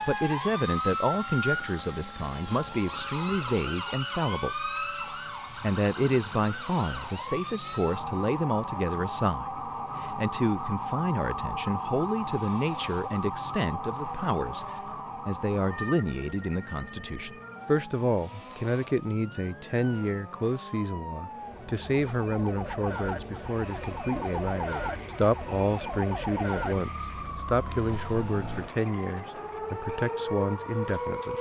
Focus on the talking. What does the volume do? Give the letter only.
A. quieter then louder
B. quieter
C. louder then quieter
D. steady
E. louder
D.